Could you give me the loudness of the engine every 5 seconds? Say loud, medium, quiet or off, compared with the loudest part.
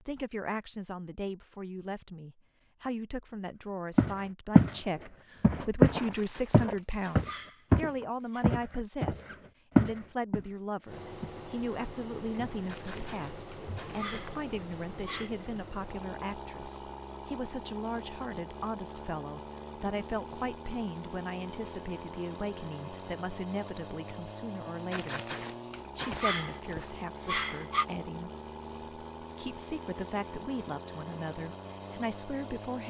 off, off, loud, loud, loud, loud, loud.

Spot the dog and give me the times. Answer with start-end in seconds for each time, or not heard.
6.0-8.4, 12.7-15.3, 24.9-27.9.